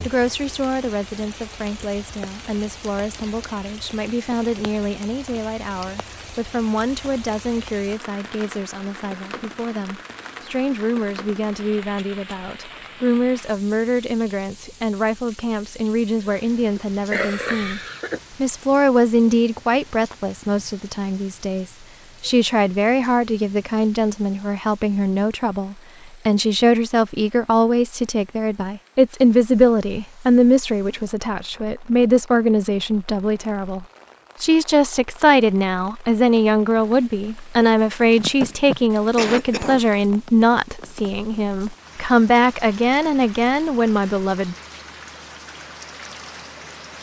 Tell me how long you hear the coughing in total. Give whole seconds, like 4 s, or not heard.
3 s.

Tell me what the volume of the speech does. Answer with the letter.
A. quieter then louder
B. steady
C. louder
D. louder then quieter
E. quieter
C.